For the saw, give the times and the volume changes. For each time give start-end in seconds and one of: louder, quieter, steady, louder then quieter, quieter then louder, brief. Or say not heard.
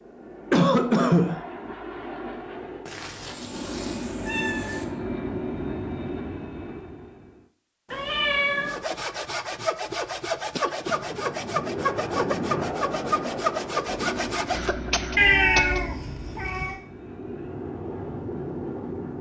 8.7-14.8 steady.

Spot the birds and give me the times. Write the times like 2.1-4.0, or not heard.
not heard.